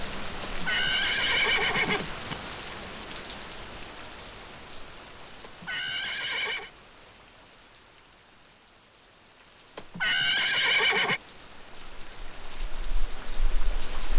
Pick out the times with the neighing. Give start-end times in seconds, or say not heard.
0.4-2.4, 5.4-6.7, 9.8-11.2.